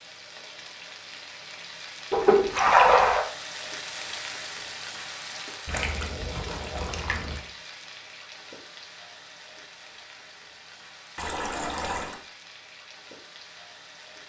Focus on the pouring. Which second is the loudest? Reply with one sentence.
The volume of the pouring peaks at 3 seconds.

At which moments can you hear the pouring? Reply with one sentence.
You can hear the pouring from 2.1 to 3.2 s, from 5.7 to 7.4 s and from 11.2 to 12.2 s.